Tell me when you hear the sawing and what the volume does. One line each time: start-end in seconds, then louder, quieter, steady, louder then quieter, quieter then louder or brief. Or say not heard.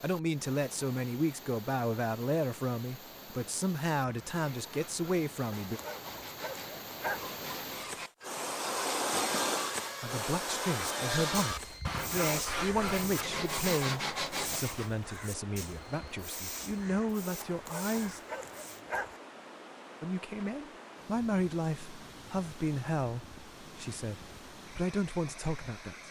4.0-14.9 louder.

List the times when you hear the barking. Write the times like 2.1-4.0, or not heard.
5.5-7.3, 17.4-19.2.